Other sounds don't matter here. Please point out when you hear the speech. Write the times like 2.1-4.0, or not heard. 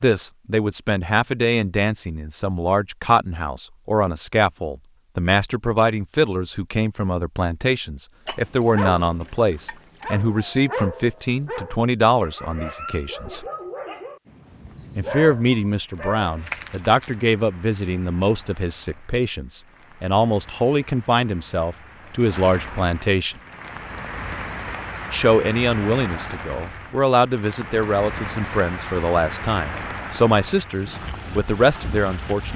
0.0-13.4, 14.9-23.4, 25.1-32.5.